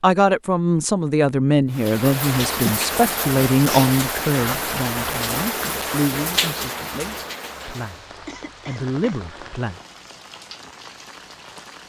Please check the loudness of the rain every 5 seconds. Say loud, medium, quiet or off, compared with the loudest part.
loud, loud, quiet.